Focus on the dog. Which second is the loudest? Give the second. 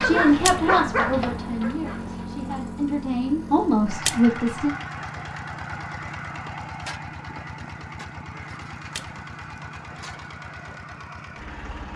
1 s.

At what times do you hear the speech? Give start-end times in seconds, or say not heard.
0.0-4.8.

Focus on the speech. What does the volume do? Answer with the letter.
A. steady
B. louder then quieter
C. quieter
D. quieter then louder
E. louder
D.